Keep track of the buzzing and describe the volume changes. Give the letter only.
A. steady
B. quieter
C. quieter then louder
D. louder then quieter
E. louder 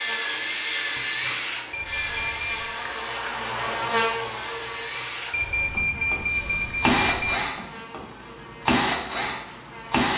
D.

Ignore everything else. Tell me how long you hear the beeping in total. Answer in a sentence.
The beeping can be heard for 3 seconds in total.